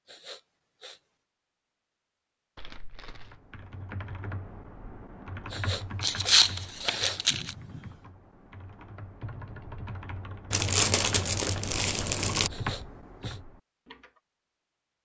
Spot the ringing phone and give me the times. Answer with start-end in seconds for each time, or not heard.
not heard.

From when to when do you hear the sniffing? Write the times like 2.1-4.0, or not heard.
0.1-1.0, 5.5-8.0, 12.5-13.4.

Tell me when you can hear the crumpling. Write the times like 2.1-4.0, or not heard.
2.5-3.4, 6.0-7.5, 10.5-12.5.